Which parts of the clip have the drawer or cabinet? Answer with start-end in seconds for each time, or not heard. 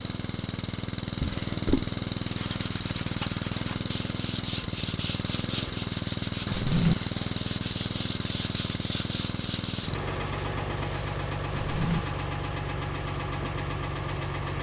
1.2-1.9, 6.5-7.0, 11.5-12.0.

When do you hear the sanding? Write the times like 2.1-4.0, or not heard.
2.2-12.1.